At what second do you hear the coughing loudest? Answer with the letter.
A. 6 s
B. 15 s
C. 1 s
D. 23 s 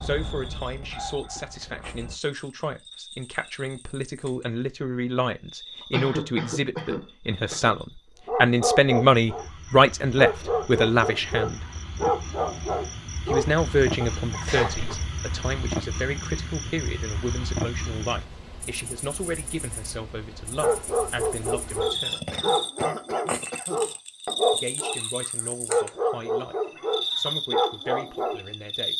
A.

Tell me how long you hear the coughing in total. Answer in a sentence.
You can hear the coughing for 4 seconds altogether.